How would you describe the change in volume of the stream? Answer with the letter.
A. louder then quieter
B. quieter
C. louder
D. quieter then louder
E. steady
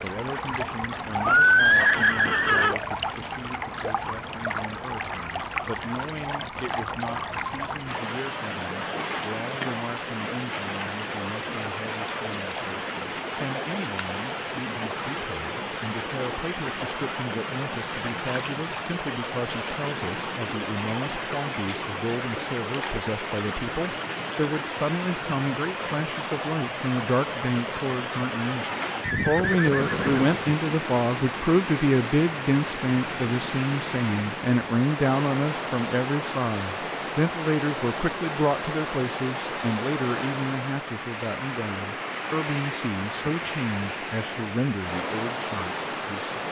E.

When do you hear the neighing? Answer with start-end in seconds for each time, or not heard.
1.2-2.8, 29.0-30.4.